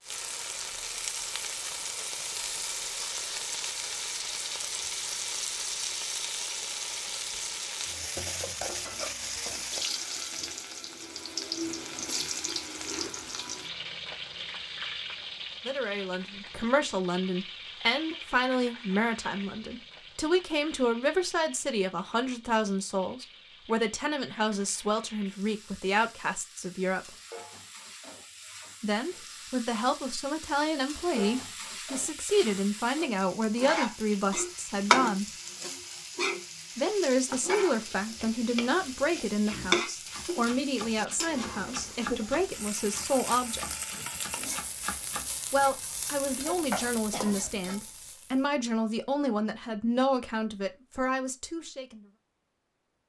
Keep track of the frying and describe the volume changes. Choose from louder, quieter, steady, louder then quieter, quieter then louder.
quieter then louder.